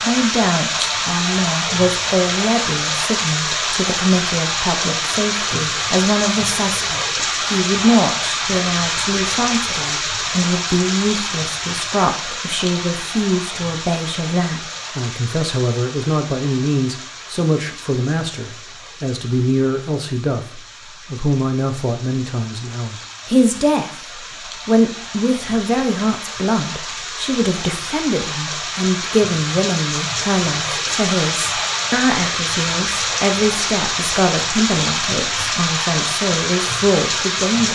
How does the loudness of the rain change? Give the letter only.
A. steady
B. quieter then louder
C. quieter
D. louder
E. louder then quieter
B.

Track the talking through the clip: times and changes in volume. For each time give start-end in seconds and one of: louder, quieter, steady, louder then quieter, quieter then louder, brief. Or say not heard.
0.0-37.7 steady.